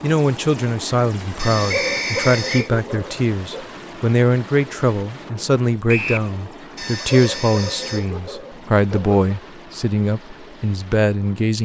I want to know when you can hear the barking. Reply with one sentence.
You can hear the barking from 1.4 to 3.7 s and from 6.8 to 9.5 s.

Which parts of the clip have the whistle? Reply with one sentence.
You can hear the whistle from 1.7 to 2.7 s and from 5.8 to 6.3 s.